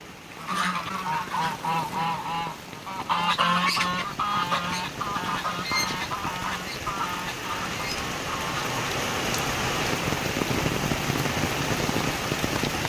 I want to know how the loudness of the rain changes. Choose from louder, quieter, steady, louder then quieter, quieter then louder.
louder.